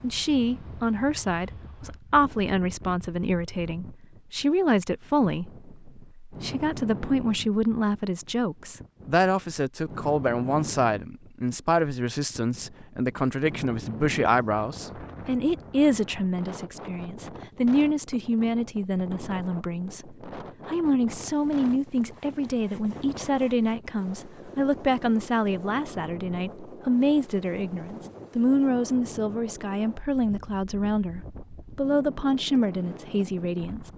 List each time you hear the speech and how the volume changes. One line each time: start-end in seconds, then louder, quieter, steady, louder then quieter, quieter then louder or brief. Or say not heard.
0.0-33.9 steady.